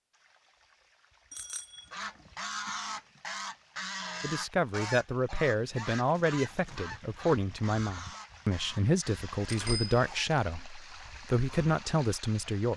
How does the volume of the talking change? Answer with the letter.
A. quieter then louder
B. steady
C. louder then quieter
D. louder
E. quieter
B.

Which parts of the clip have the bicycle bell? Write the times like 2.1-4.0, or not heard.
1.3-3.0, 9.4-10.1.